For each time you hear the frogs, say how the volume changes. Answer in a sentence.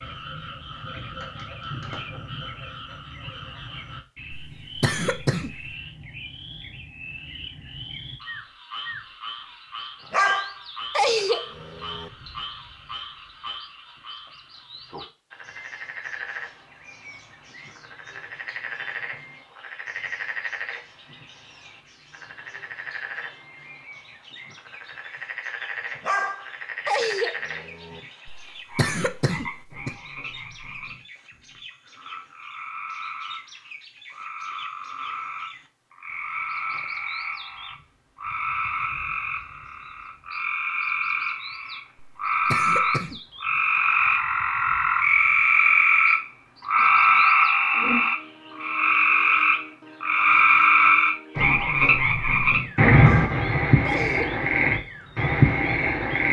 You can hear the frogs from 0.0 to 56.2 s, getting louder.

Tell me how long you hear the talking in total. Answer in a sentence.
The talking can't be heard in this clip.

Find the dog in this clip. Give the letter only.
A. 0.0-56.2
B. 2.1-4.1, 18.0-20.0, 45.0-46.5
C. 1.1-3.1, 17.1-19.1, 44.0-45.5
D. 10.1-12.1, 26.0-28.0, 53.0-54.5
D.